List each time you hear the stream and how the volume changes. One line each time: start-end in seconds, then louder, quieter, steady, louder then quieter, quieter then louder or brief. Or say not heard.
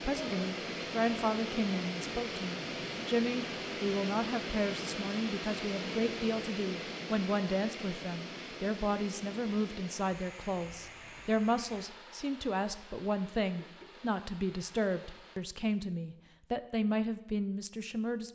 0.0-15.4 quieter.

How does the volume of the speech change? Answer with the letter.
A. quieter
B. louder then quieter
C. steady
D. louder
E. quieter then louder
C.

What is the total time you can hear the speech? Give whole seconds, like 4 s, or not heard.
18 s.